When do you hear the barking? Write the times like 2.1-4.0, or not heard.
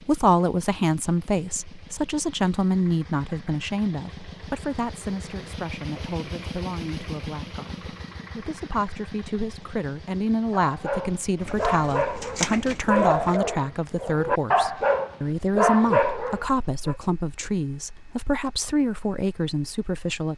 10.6-16.9.